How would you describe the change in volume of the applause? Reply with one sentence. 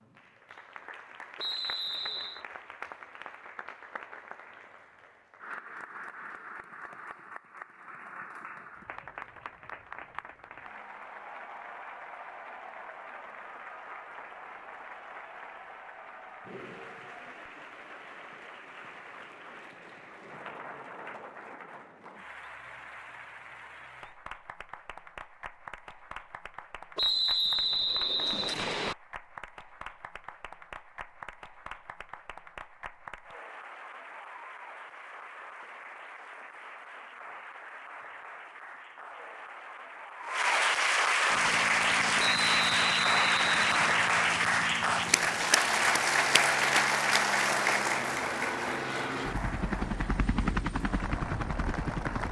The volume of the applause goes up.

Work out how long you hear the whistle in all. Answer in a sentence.
The whistle can be heard for 5 seconds in total.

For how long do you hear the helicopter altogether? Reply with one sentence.
You can hear the helicopter for 11 seconds altogether.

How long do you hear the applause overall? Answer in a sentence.
The applause can be heard for 52 seconds in total.